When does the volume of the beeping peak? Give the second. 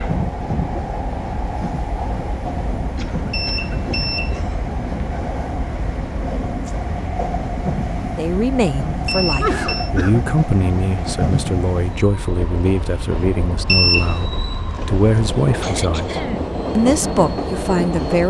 14 s.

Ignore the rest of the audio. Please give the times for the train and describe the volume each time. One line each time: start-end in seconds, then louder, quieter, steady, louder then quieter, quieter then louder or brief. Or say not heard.
0.0-18.2 steady.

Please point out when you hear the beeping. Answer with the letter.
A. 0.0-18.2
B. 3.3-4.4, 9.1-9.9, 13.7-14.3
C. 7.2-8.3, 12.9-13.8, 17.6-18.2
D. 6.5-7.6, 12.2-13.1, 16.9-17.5
B.